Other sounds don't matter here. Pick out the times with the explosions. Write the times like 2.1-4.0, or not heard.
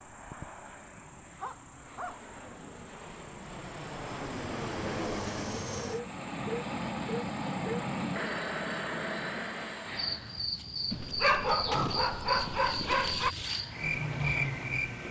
11.7-12.2.